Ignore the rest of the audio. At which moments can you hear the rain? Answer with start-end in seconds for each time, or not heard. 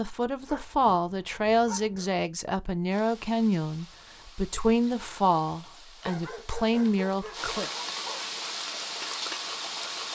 2.9-10.1.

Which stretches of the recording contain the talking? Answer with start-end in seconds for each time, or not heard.
0.0-7.7.